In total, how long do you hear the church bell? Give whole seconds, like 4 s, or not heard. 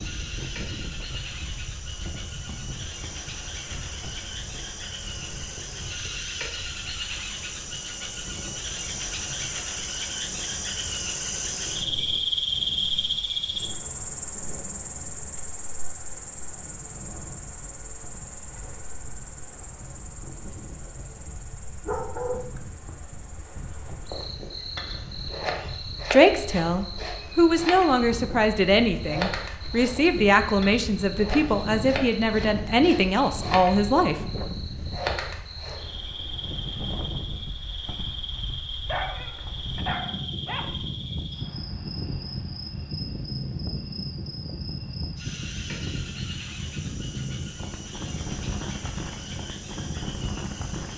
not heard.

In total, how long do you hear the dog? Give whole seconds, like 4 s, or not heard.
3 s.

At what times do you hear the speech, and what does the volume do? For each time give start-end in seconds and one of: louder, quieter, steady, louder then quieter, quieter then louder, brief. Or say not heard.
26.1-34.2 steady.